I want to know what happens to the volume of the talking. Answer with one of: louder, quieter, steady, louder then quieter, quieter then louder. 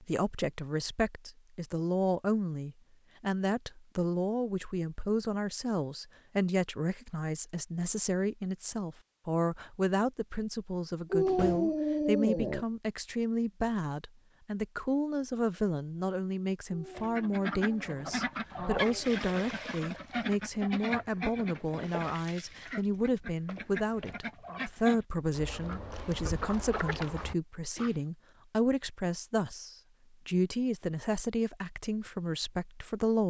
steady.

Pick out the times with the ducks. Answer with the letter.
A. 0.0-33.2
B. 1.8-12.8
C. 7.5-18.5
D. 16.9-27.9
D.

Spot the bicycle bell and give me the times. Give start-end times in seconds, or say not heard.
not heard.